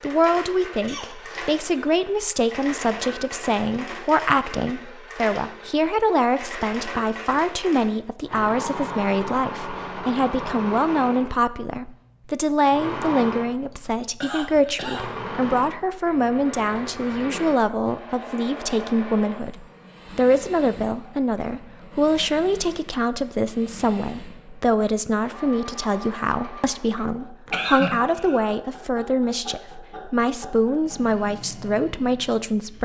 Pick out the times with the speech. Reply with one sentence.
You can hear the speech from 0.0 to 32.8 s.